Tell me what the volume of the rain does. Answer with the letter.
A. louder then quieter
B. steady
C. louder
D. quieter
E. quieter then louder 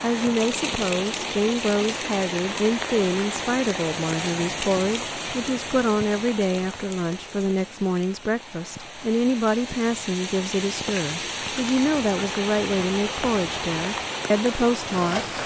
E.